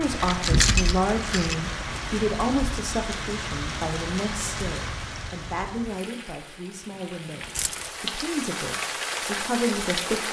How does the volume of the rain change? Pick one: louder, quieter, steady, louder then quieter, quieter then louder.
quieter then louder.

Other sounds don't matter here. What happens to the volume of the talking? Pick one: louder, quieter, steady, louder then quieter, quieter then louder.
quieter then louder.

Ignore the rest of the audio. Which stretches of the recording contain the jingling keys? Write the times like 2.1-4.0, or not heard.
0.2-1.6, 7.4-7.9.